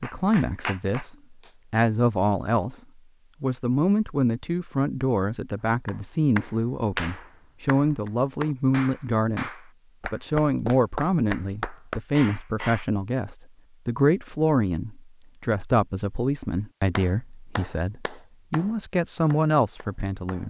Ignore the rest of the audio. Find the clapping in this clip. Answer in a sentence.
The clapping can be heard from 0.0 to 1.6 s, from 5.8 to 12.8 s and from 16.9 to 20.4 s.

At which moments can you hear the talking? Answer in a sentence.
The talking can be heard from 0.0 to 2.8 s, from 3.4 to 9.5 s and from 10.1 to 20.4 s.